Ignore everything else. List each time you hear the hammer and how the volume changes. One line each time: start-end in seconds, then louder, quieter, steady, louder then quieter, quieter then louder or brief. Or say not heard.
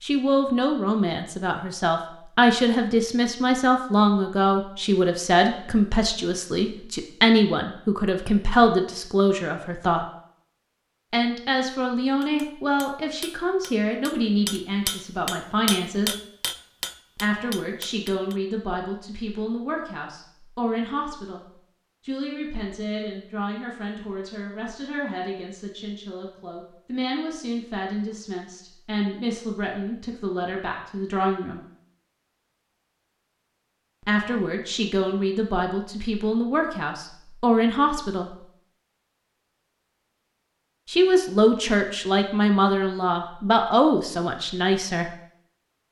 12.2-18.4 louder then quieter.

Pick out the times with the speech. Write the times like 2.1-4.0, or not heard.
0.0-10.1, 11.1-16.1, 17.1-31.6, 34.0-38.4, 40.9-45.1.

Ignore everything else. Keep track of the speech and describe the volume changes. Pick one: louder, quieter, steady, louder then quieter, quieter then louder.
quieter then louder.